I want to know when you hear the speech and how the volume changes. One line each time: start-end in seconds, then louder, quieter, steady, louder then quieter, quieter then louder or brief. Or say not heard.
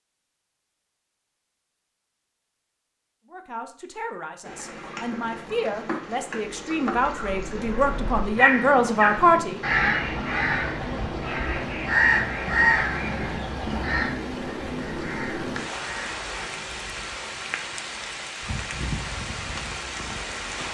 3.2-9.6 louder.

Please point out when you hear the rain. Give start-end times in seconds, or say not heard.
4.4-20.7.